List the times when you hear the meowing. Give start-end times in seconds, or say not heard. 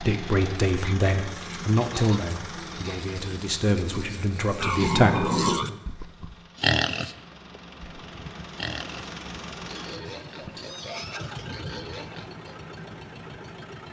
10.2-11.5.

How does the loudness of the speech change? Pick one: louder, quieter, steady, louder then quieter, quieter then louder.
quieter then louder.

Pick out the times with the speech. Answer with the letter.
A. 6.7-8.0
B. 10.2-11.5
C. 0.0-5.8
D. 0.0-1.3
C.